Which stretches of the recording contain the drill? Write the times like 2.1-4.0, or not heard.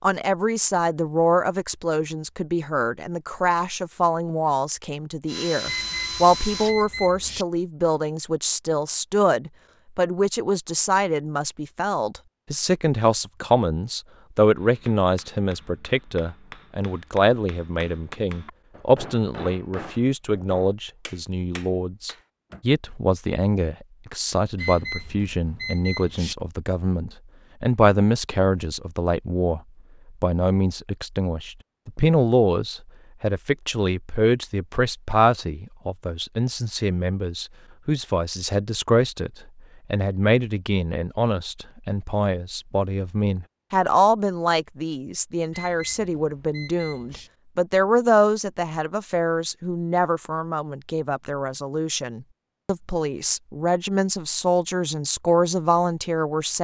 5.2-6.8.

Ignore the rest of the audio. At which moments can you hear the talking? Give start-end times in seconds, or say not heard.
0.0-29.6, 30.2-39.3, 39.9-56.5.